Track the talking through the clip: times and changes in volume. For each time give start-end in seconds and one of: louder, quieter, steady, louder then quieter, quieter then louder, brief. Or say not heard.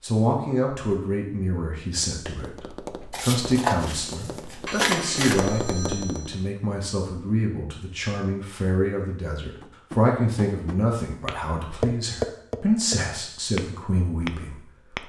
0.0-15.0 steady.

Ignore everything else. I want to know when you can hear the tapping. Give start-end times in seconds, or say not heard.
1.9-6.3, 9.6-15.0.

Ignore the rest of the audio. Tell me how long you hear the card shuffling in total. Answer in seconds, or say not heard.
2 s.